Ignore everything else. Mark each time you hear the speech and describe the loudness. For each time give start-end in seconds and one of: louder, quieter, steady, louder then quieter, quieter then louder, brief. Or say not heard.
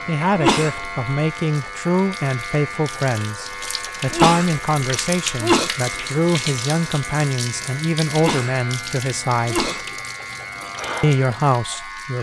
0.1-9.7 steady
11.0-12.1 brief.